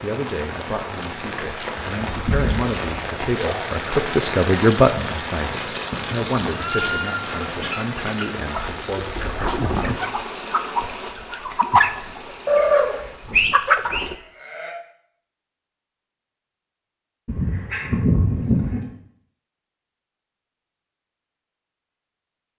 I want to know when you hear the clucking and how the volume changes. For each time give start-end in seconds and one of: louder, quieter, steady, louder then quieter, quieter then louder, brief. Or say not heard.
7.5-14.2 louder.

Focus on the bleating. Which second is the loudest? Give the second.
13 s.